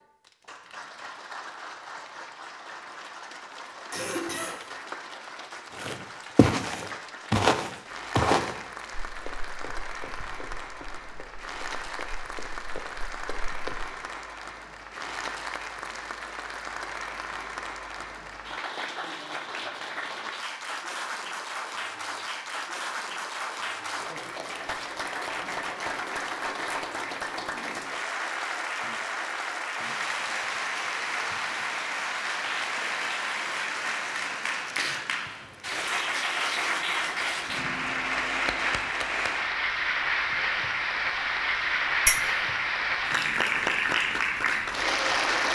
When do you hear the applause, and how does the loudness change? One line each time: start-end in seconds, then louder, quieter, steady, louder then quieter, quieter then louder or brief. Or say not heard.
0.0-45.5 louder.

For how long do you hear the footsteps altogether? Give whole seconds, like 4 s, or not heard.
8 s.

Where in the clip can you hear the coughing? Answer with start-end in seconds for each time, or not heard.
3.9-4.6.